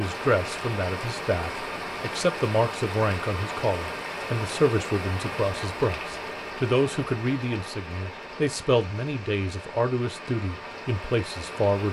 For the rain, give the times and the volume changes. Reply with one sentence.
The rain can be heard from 0.0 to 11.8 s, getting quieter.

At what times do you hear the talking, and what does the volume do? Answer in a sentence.
You can hear the talking from 0.0 to 11.8 s, at a steady volume.